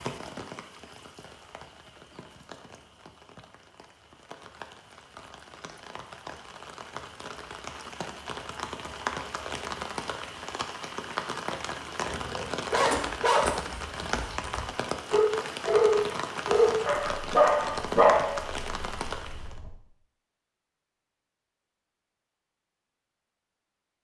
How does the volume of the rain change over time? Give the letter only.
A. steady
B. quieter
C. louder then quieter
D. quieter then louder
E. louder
E.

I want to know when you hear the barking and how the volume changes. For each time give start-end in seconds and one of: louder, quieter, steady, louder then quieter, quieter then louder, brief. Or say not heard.
12.0-19.7 quieter then louder.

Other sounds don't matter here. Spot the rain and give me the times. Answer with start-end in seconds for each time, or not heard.
0.0-19.6.